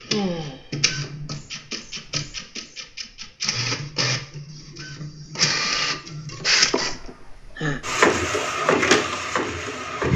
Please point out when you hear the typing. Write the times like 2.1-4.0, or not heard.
not heard.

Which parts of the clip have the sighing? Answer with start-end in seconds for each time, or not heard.
0.1-0.8, 6.7-7.8.